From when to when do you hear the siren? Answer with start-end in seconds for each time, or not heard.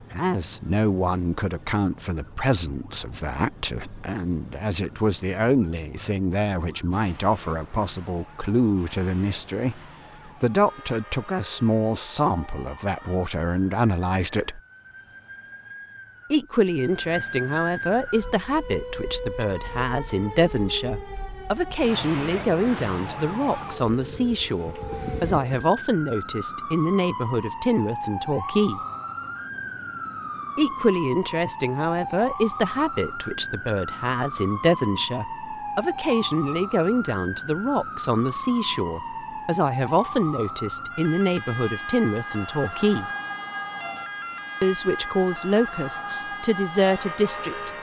0.0-47.7.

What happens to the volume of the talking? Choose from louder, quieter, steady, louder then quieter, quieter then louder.
steady.